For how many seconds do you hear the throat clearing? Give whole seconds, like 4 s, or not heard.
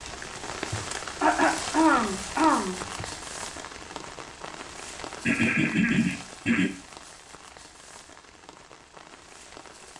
4 s.